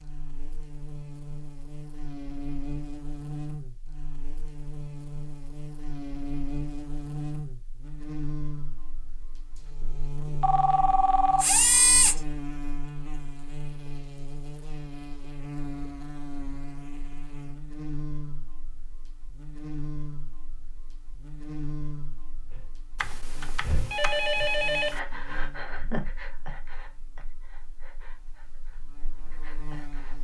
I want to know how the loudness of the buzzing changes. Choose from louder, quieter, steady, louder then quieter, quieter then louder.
quieter.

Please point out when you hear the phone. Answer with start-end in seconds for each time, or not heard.
10.4-12.2, 23.0-24.9.